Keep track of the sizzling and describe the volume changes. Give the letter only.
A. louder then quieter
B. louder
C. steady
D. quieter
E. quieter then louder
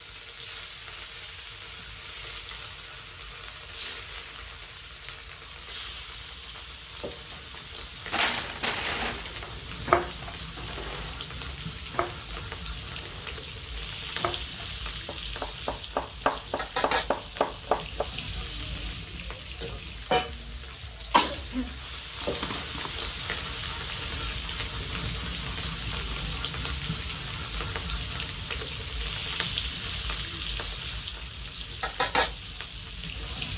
B.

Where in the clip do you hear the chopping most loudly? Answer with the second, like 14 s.
10 s.